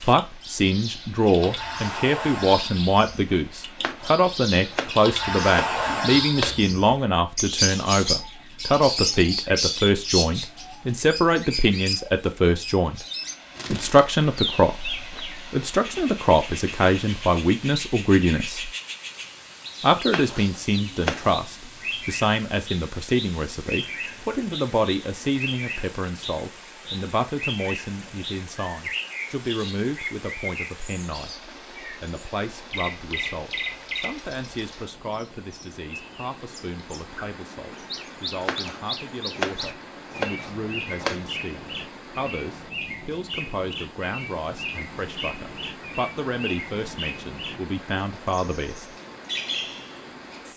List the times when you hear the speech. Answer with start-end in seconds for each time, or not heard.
0.0-13.0, 13.7-18.7, 19.8-48.9.